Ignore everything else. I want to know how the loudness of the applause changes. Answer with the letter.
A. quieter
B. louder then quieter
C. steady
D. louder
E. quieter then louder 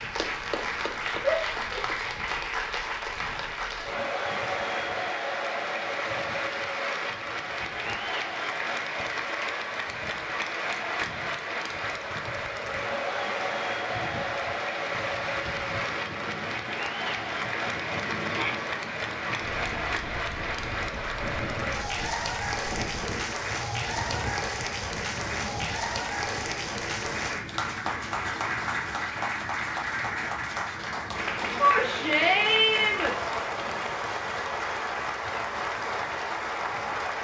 C.